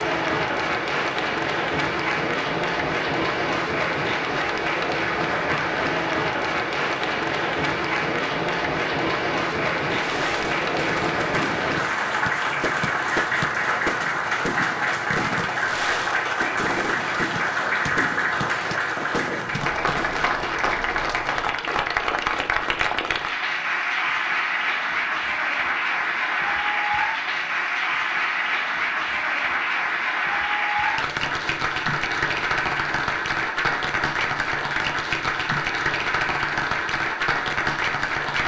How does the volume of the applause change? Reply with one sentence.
The volume of the applause stays about the same.